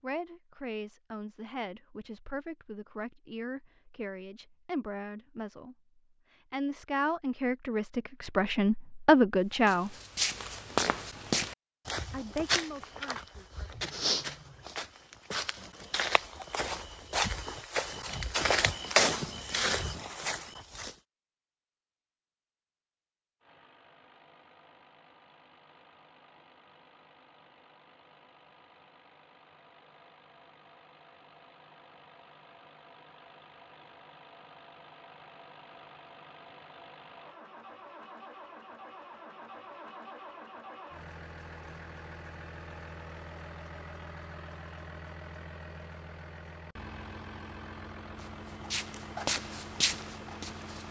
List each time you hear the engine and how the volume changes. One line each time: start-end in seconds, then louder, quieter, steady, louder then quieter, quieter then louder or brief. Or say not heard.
23.4-50.8 louder.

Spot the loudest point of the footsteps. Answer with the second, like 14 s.
19 s.